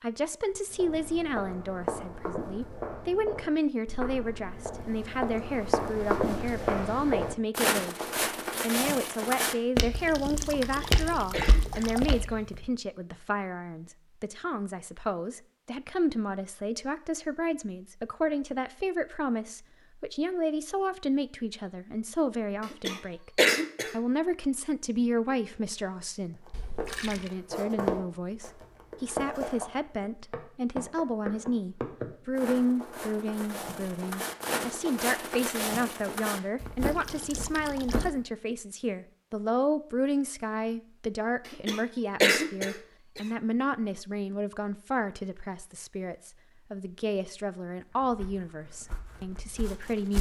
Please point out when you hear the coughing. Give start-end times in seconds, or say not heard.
10.7-12.4, 22.7-23.9, 41.5-43.2.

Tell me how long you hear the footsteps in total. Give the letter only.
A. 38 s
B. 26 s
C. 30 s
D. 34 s
B.